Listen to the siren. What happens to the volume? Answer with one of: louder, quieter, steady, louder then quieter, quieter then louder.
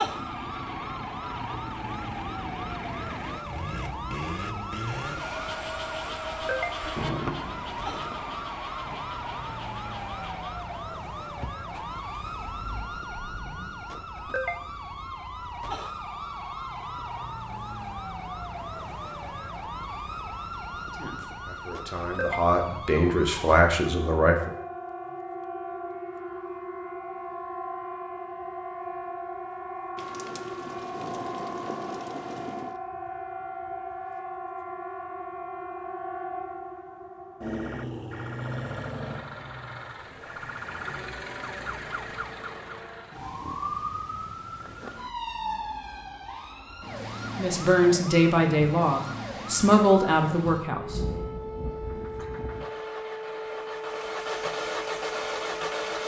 steady.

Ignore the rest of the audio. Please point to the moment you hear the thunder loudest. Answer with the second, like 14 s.
7 s.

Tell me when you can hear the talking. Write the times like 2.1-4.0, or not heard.
20.9-24.5, 47.4-51.0.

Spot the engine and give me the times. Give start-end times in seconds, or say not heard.
0.0-14.1, 38.8-43.4, 51.8-56.0.